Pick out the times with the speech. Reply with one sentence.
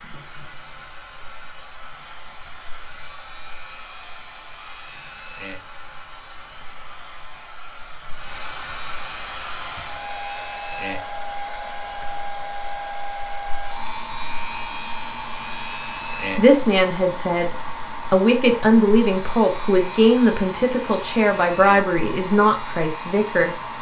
The speech can be heard from 16.4 to 17.5 s and from 18.1 to 23.6 s.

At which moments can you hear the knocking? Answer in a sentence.
You can't hear the knocking here.